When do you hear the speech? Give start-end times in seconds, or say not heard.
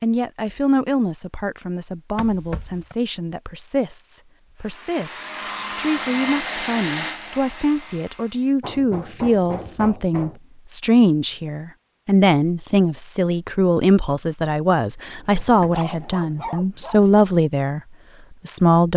0.0-17.8, 18.4-18.9.